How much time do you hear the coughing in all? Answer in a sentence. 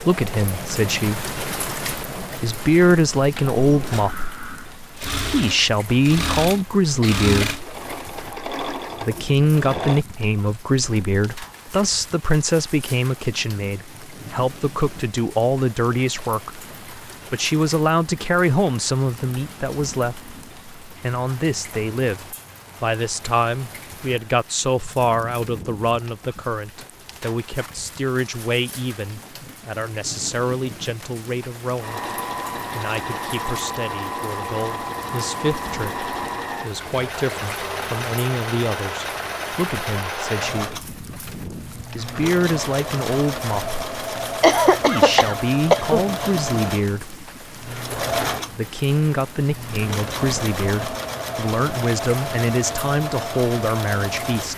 You can hear the coughing for 3 seconds altogether.